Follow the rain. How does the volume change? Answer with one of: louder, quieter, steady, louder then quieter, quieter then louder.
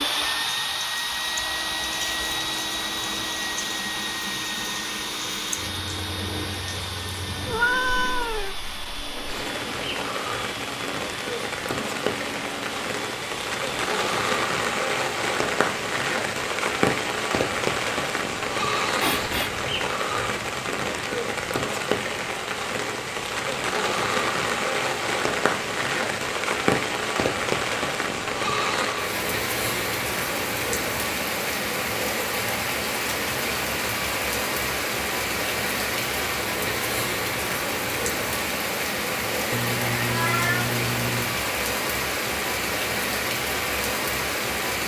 louder.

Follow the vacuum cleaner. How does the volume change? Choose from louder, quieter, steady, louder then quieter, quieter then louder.
quieter.